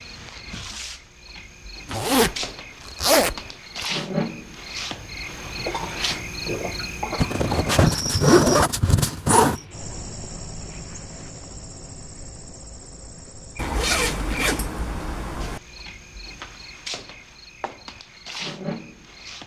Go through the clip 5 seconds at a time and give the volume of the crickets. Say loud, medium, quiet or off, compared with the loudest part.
loud, loud, medium, medium.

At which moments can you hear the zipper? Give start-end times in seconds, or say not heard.
1.9-3.9, 7.2-9.6, 13.6-15.6.